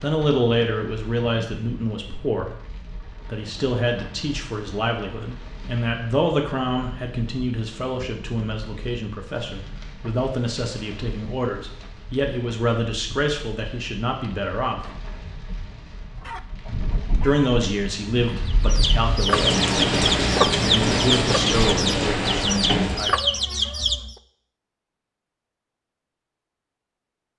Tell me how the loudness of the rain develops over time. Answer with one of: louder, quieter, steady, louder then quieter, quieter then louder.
louder.